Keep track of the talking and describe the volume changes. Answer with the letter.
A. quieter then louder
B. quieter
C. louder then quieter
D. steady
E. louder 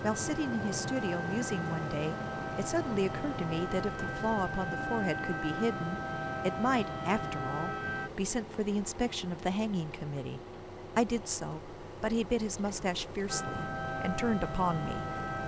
D.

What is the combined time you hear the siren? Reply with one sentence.
The siren can be heard for 10 seconds in total.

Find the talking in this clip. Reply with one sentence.
The talking can be heard from 0.0 to 15.4 s.